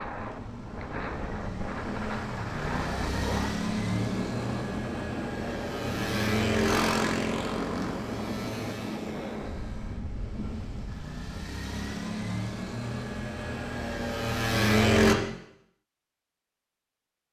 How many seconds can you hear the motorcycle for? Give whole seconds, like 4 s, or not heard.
15 s.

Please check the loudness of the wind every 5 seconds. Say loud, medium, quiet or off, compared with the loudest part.
loud, loud, medium, off.